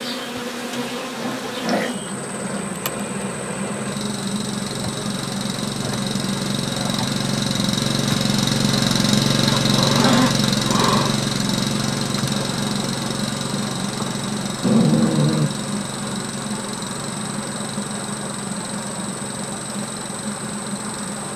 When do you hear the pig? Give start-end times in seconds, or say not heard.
not heard.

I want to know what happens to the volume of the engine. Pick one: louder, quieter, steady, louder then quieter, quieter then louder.
louder then quieter.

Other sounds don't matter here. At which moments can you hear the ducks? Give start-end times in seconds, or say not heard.
not heard.